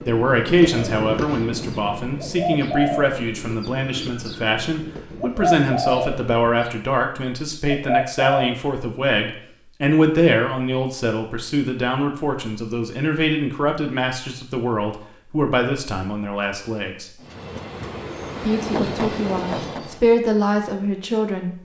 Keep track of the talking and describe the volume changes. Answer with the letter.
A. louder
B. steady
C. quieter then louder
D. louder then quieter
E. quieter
B.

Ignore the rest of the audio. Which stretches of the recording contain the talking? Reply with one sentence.
The talking can be heard from 0.1 to 17.1 s and from 18.4 to 21.6 s.